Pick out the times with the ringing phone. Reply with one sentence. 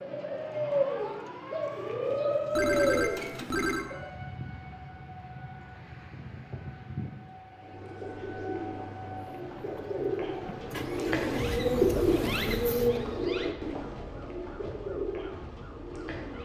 You can hear the ringing phone from 2.5 to 3.9 s.